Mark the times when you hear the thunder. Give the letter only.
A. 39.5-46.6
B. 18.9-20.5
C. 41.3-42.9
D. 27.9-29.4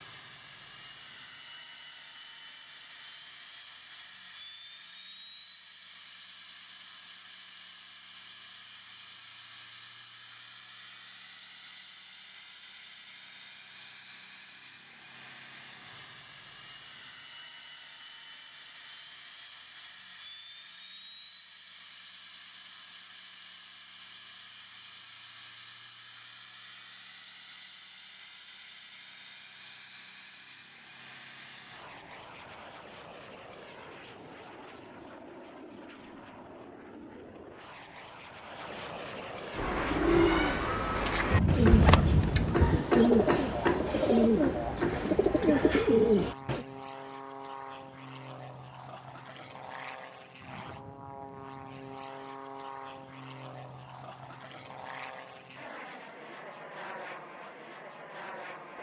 C.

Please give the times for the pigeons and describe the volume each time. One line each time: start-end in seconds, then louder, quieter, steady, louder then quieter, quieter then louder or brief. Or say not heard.
39.5-46.6 steady.